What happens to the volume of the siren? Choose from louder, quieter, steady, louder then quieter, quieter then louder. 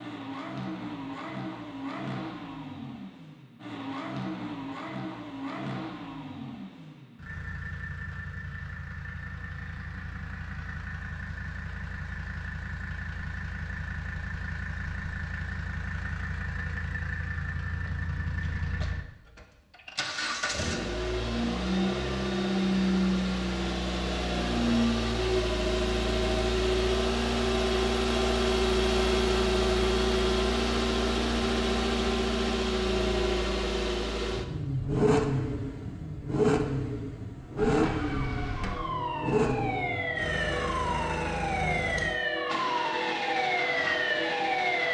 louder.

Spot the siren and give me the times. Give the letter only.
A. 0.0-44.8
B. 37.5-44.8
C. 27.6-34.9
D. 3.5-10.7
B.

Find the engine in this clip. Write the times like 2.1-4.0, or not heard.
0.0-44.8.